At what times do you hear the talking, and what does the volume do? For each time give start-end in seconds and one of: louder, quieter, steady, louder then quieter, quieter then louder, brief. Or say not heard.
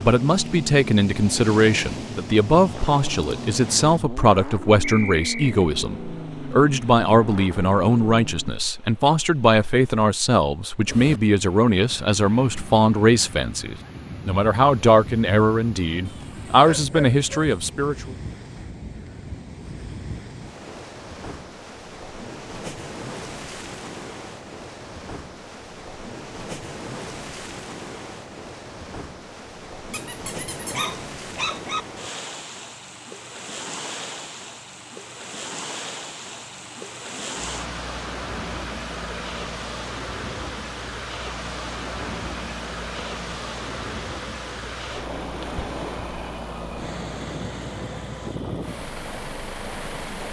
0.0-18.1 steady.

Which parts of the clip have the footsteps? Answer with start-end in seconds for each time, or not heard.
not heard.